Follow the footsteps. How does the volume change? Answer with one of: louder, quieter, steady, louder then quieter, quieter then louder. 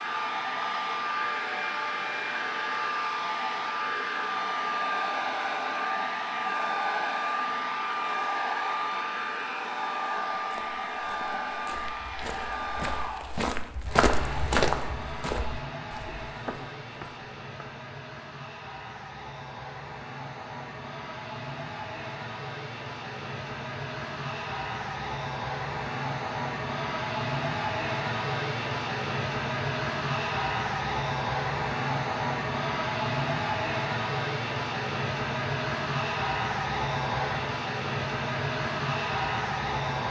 louder then quieter.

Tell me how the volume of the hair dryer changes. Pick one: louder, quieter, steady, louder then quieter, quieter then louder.
quieter then louder.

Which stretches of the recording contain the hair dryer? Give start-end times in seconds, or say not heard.
0.0-40.0.